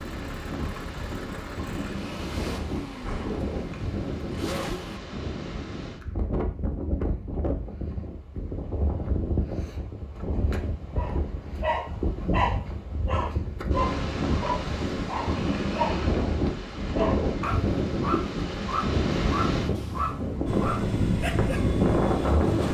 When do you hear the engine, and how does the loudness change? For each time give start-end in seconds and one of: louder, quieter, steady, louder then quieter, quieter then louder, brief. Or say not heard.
0.0-5.0 louder
20.4-22.6 brief.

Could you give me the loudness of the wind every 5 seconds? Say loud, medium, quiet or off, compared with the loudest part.
medium, medium, medium, loud, loud.